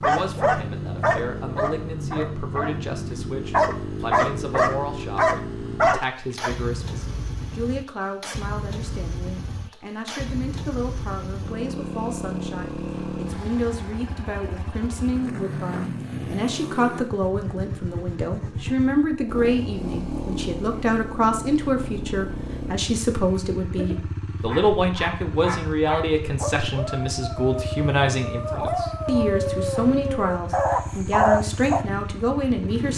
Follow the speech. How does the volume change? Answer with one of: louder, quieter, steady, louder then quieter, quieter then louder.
louder.